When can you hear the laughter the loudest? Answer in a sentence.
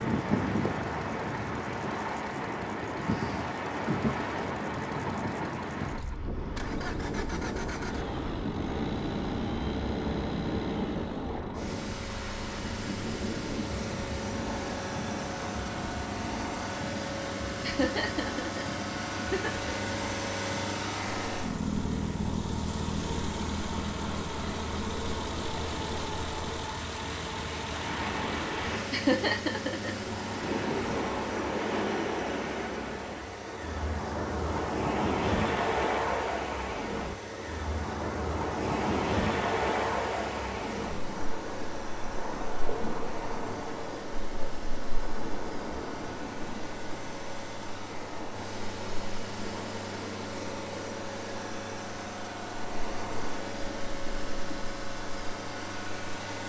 The volume of the laughter peaks at 29 seconds.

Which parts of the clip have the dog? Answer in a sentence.
The dog can't be heard in this clip.